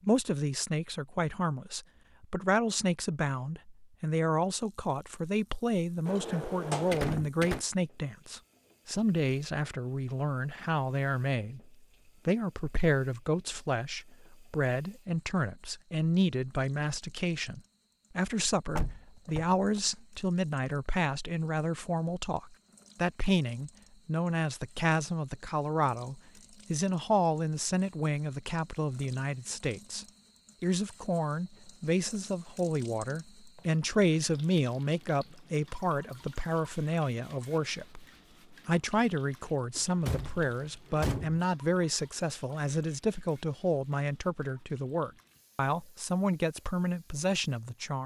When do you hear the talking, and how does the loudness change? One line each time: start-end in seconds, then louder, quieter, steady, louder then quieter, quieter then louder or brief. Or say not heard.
0.0-48.0 steady.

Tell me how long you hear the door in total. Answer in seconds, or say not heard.
4 s.